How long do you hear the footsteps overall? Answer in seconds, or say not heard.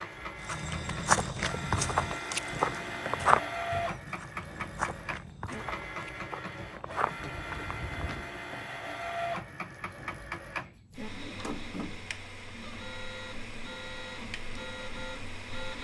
8 s.